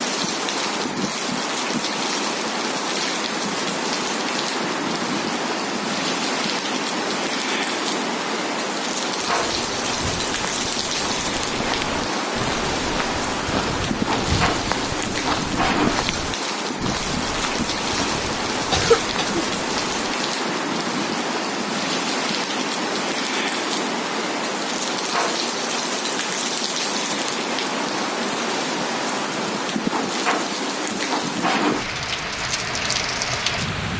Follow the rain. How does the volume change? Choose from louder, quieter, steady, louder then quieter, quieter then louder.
steady.